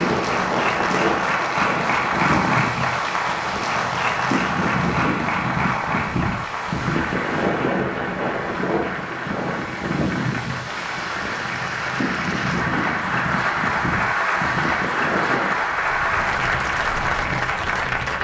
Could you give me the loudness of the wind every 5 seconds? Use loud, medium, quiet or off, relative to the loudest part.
loud, loud, loud, medium.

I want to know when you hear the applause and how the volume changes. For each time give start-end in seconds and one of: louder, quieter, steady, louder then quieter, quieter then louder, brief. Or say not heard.
0.0-18.1 quieter then louder.